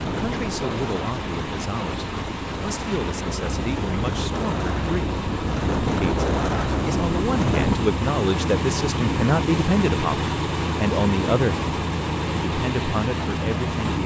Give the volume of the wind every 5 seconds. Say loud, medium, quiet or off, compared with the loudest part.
medium, loud, off.